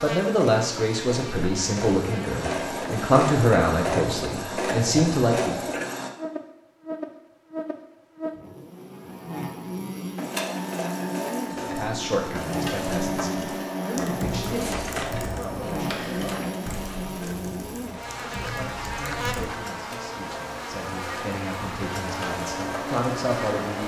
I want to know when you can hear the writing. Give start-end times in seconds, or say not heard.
not heard.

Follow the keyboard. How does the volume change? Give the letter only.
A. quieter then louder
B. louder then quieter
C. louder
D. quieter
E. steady
A.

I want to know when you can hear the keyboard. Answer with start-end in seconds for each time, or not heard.
13.9-19.5.